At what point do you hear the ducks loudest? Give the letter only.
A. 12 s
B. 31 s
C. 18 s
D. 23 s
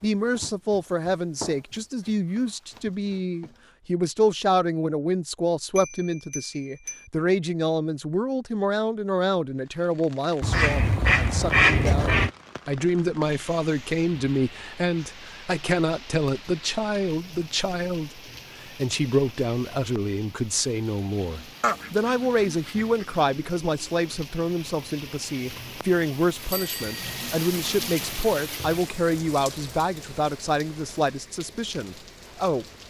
A.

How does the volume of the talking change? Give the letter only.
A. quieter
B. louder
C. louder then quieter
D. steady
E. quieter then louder
D.